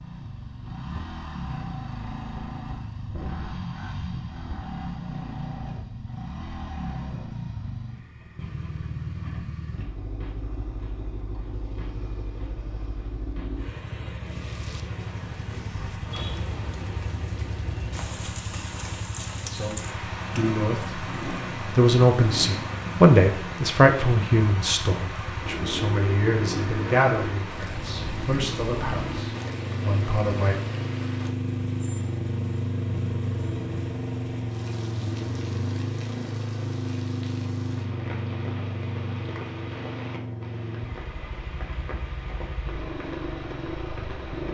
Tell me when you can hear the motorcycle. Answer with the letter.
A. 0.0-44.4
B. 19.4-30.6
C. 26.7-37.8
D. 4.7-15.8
A.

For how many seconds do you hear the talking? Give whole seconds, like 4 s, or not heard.
11 s.